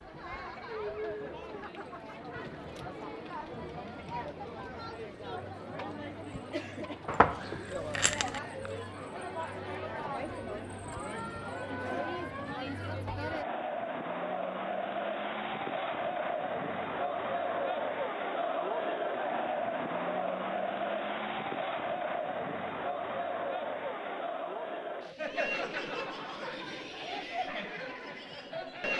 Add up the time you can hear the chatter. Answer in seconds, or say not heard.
29 s.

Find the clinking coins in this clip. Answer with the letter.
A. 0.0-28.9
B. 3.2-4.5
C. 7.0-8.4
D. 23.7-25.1
C.